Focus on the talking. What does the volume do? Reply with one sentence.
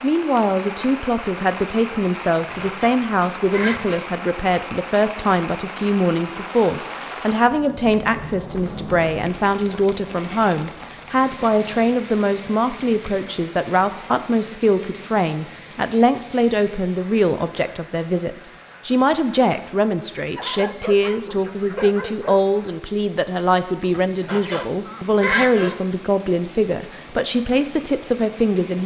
The loudness of the talking stays about the same.